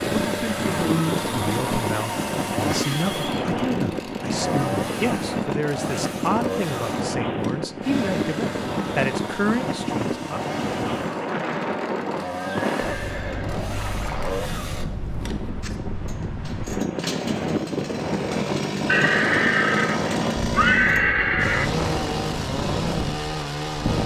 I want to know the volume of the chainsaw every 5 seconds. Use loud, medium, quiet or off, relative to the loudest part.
loud, medium, medium, loud, loud.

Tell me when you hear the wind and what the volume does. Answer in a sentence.
You can hear the wind from 0.0 to 24.0 s, at a steady volume.